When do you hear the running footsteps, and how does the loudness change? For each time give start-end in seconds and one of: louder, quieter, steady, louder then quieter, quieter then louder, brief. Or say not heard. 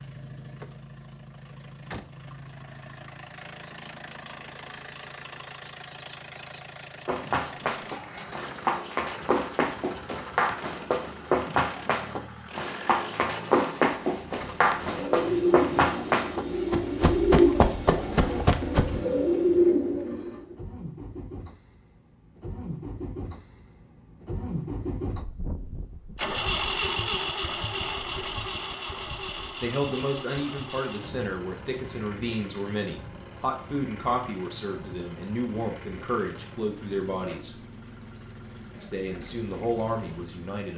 7.0-19.0 steady.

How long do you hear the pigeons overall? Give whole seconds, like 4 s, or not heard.
6 s.